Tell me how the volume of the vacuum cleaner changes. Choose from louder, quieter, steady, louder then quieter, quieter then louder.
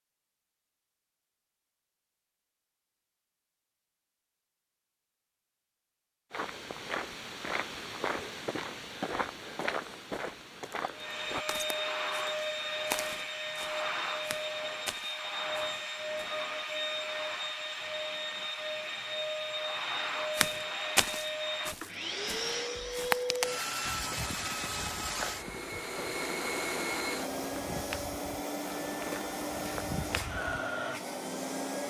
steady.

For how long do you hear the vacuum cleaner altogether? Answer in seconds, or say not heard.
21 s.